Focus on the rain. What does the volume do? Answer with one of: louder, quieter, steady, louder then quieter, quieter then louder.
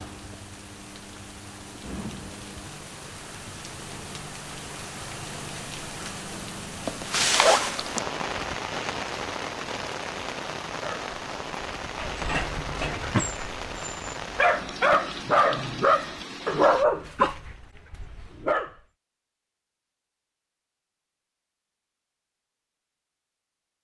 louder then quieter.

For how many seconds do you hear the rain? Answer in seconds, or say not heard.
17 s.